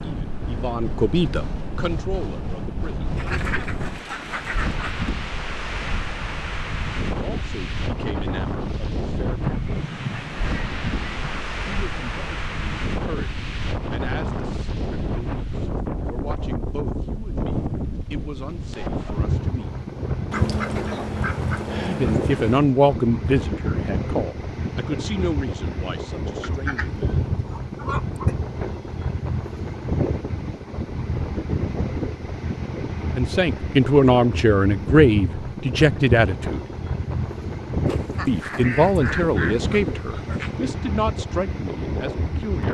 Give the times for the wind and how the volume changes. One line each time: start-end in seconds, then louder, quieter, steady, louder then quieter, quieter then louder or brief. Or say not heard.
0.0-42.6 steady.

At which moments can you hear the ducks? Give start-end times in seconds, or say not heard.
3.1-5.1, 9.4-11.4, 20.3-22.6, 26.4-28.4, 37.9-40.5.